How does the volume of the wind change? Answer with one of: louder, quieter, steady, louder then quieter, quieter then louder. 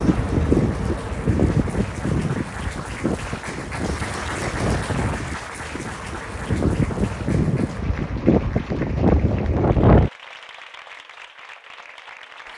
quieter then louder.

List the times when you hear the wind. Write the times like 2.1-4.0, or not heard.
0.0-10.1.